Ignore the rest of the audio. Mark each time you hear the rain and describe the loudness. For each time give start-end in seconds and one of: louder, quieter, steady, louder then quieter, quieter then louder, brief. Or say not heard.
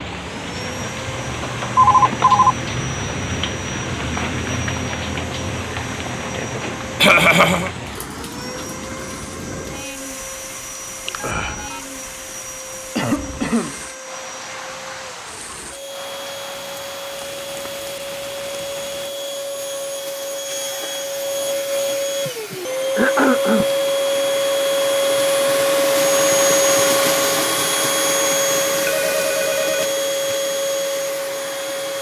0.0-19.1 quieter.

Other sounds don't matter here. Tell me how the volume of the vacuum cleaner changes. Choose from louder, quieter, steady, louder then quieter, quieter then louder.
louder.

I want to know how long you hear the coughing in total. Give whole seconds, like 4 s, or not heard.
3 s.